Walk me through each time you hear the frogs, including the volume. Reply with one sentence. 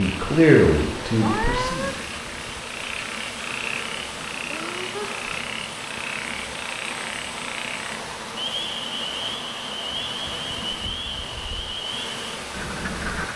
The frogs can be heard from 0.0 to 13.3 s, at a steady volume.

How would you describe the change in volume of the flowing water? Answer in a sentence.
The loudness of the flowing water stays about the same.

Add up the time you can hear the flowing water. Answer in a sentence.
You can hear the flowing water for 13 seconds altogether.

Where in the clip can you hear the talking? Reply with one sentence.
You can hear the talking from 0.0 to 1.9 s.